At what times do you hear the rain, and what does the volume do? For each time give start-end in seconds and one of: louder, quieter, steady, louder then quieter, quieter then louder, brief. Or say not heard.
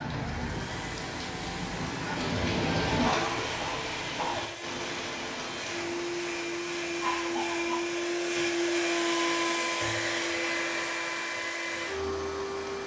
0.0-12.8 quieter.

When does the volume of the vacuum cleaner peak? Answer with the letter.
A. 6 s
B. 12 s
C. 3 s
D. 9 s
D.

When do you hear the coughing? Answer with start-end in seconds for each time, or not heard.
3.0-4.5, 7.0-7.8.